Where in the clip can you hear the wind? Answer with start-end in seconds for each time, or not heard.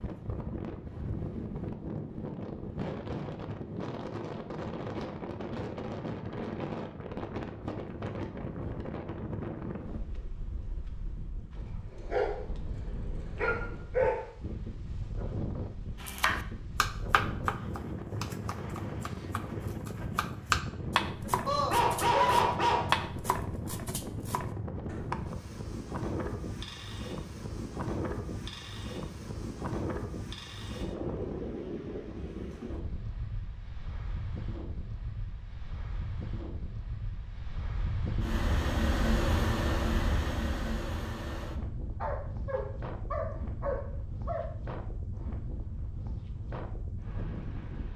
0.0-47.9.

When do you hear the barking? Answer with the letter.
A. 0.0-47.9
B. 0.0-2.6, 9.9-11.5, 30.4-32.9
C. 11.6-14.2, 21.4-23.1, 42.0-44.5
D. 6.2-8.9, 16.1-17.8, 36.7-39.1
C.